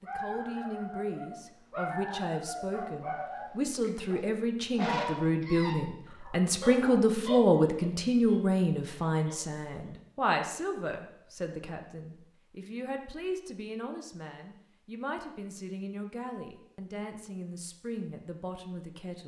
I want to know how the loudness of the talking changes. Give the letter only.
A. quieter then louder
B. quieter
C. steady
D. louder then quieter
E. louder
D.